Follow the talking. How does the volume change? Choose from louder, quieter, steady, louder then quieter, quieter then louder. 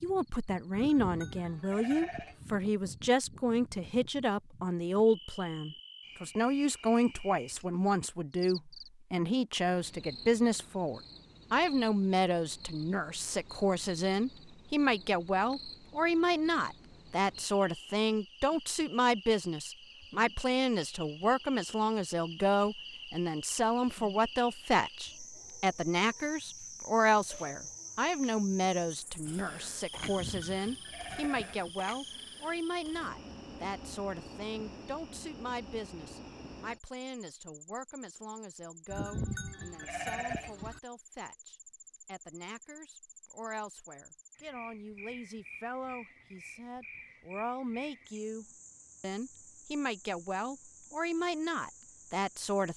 quieter.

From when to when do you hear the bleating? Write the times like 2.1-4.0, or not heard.
0.7-2.5, 29.9-31.7, 38.9-40.8.